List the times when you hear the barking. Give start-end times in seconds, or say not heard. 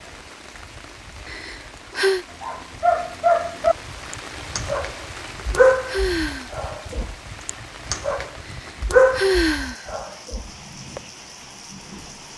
2.4-11.0.